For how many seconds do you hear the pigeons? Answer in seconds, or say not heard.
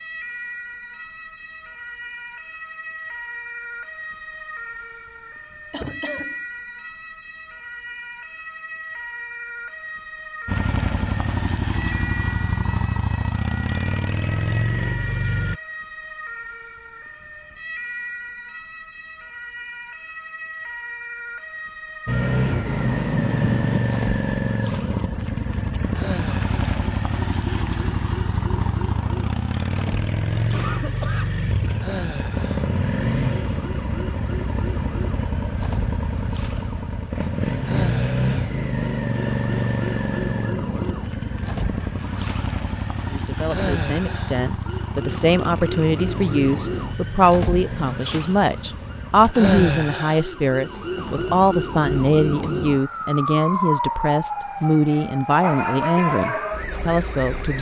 2 s.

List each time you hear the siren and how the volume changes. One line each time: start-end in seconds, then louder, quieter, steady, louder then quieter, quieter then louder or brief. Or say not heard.
0.0-57.5 louder.